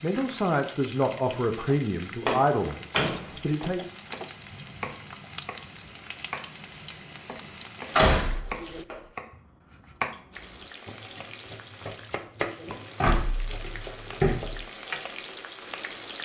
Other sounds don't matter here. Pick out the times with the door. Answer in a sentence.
You can hear the door from 2.2 to 3.3 s, from 8.0 to 8.9 s and from 13.0 to 14.6 s.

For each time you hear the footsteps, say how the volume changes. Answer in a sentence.
The footsteps can't be heard in this clip.